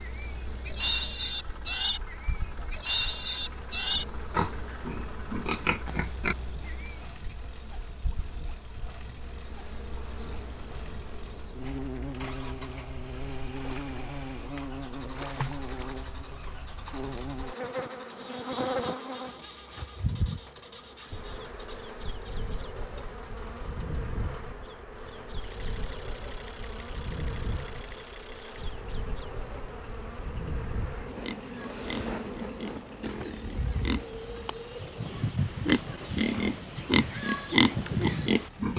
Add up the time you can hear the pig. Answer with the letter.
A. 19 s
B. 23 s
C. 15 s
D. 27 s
C.